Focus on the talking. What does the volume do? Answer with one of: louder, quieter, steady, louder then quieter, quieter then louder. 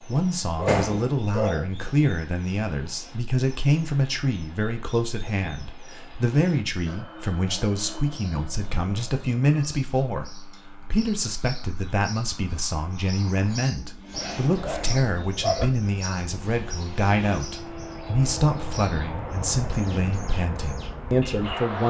steady.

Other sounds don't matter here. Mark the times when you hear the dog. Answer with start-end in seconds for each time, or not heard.
0.1-1.6, 14.1-15.7.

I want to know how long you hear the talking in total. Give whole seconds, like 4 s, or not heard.
22 s.